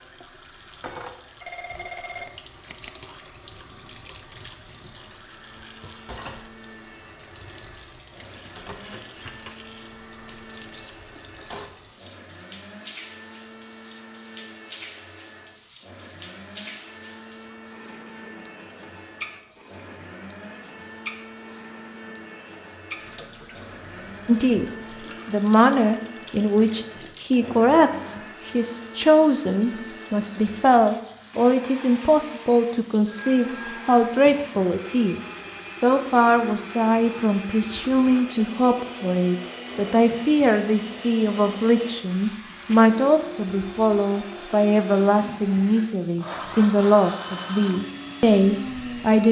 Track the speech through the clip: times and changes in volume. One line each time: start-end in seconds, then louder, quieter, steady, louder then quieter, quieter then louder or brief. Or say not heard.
24.2-49.2 steady.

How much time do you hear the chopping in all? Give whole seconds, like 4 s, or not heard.
not heard.